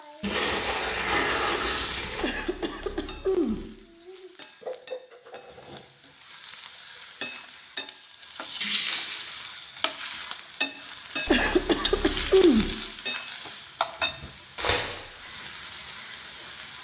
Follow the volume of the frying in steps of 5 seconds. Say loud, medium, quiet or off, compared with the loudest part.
medium, medium, loud, medium.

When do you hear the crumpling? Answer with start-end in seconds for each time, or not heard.
0.2-2.2, 8.6-9.3, 14.6-15.0.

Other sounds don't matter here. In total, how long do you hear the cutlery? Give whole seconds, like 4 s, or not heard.
not heard.